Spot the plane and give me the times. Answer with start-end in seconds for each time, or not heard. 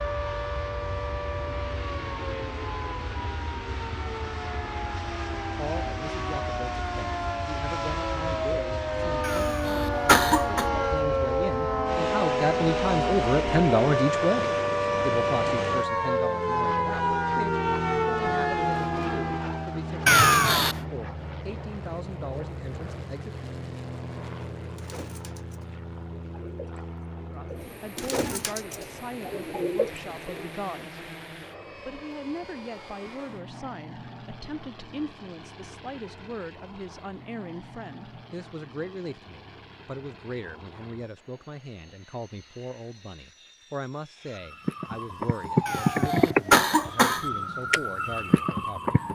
0.0-49.0.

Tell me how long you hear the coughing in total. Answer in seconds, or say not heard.
4 s.